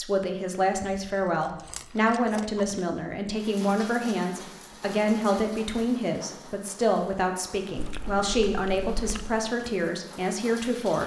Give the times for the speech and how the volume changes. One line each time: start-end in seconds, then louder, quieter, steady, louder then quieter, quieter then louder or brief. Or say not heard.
0.0-11.0 steady.